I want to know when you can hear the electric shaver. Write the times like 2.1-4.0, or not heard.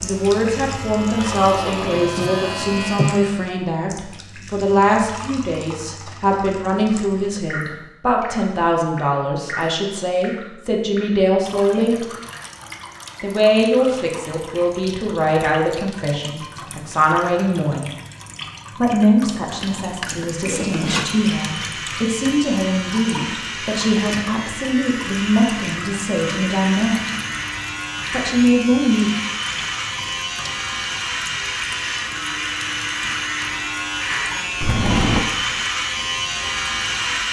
0.0-3.5, 20.2-37.2.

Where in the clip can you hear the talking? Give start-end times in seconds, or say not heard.
0.0-12.1, 13.2-17.9, 18.8-27.0, 28.1-29.1.